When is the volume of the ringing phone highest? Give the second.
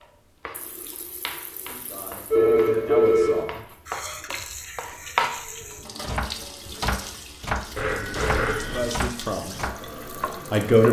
3 s.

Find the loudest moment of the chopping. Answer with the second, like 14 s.
5 s.